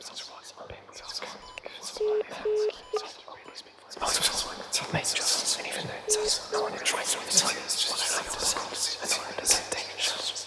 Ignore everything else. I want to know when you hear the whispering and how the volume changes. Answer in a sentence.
The whispering can be heard from 0.0 to 10.4 s, getting louder.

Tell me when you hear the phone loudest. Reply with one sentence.
The loudest moment of the phone is at 3 seconds.